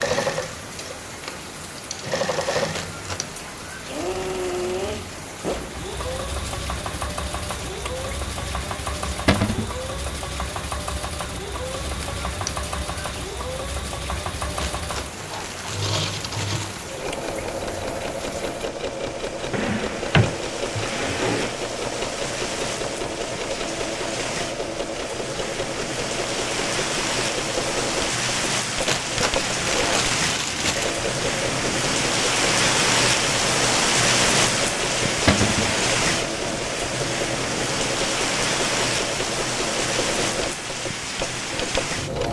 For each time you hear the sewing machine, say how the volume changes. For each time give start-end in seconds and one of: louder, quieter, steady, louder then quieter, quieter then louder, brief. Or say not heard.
0.0-42.2 steady.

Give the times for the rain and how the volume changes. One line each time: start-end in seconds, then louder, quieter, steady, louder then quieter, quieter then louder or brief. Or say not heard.
0.0-42.2 louder.